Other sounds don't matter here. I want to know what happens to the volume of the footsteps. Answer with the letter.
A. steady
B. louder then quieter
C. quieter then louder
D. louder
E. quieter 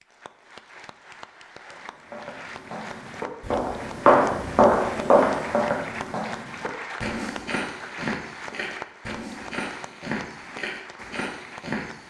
E.